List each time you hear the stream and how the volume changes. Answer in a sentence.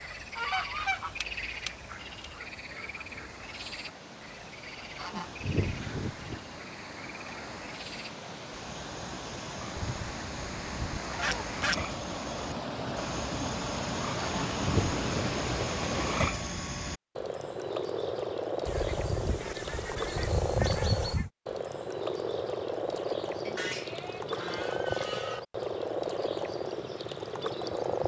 The stream can be heard from 0.0 to 16.4 s, getting louder.